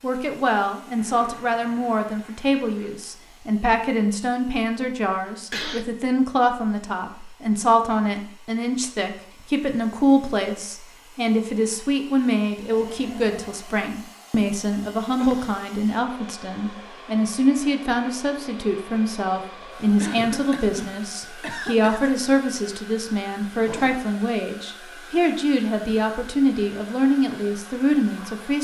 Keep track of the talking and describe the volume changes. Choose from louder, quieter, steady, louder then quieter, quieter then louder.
steady.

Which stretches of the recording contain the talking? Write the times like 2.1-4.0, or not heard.
0.0-28.5.